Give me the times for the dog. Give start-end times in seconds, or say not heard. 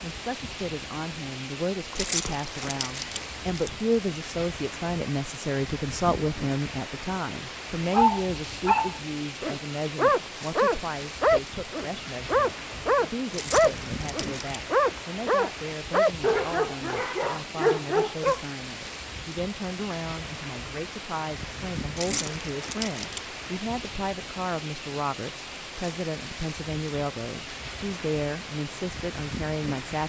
7.9-18.4.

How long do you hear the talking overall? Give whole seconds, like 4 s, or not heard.
30 s.